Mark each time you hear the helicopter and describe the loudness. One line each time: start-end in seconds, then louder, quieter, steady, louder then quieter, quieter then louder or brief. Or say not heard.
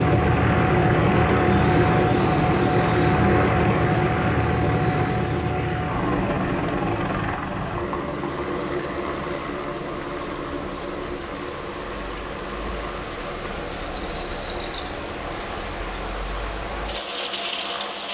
0.0-18.0 quieter.